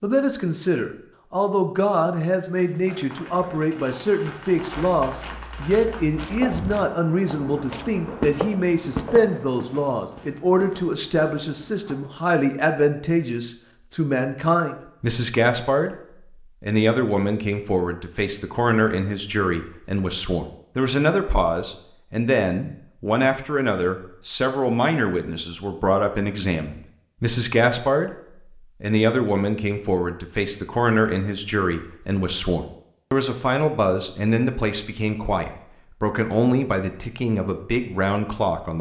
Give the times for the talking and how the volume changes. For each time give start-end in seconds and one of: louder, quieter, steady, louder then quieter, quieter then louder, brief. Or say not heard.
0.0-15.9 steady
16.6-28.1 steady
28.8-38.7 steady.